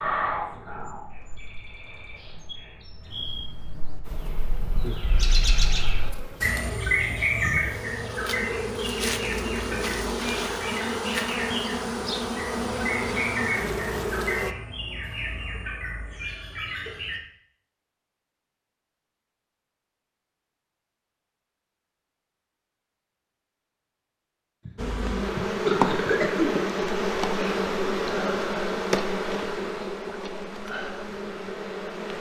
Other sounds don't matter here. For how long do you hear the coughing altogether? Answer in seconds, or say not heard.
2 s.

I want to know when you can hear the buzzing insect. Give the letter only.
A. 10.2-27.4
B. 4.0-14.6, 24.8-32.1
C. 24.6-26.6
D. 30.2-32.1
B.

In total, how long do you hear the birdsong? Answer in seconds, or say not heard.
17 s.